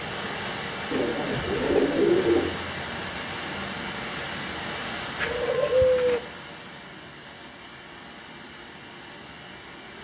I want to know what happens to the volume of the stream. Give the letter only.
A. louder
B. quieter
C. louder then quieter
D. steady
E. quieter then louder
B.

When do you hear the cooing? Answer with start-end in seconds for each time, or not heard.
0.9-2.5, 5.2-6.2.